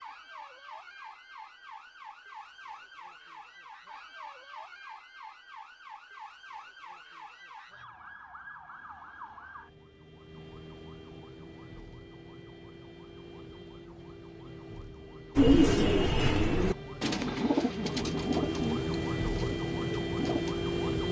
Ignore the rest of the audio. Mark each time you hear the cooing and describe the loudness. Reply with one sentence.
The cooing can be heard from 15.3 to 20.6 s, getting quieter.